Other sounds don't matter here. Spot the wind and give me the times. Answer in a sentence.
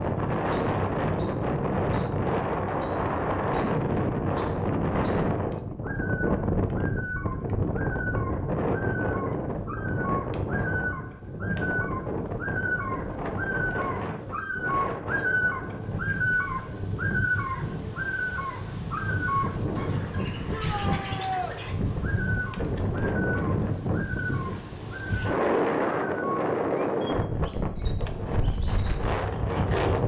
You can hear the wind from 0.0 to 30.0 s.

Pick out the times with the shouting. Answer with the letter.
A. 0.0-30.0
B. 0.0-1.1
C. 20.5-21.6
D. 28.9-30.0
C.